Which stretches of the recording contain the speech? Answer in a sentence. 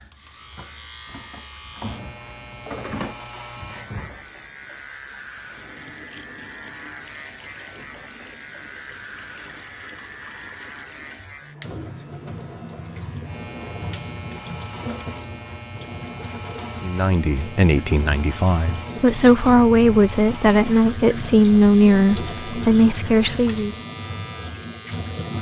You can hear the speech from 16.8 to 23.8 s.